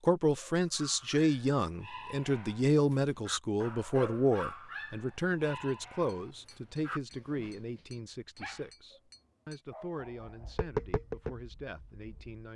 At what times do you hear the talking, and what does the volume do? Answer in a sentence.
The talking can be heard from 0.0 to 12.5 s, getting quieter.